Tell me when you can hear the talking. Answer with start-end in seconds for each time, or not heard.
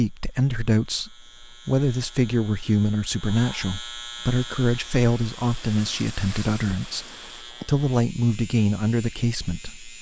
0.0-7.0, 7.7-9.9.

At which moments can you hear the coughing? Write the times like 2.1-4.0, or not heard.
not heard.